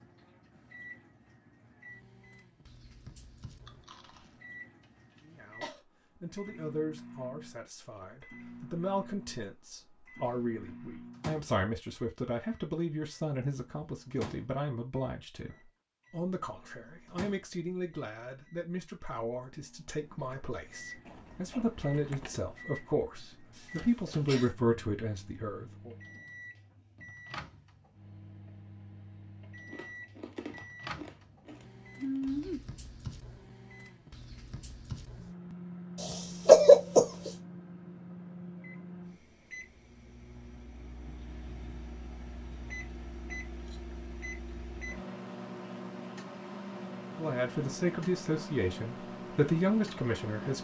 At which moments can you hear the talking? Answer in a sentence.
You can hear the talking from 5.2 to 25.9 s and from 47.1 to 50.5 s.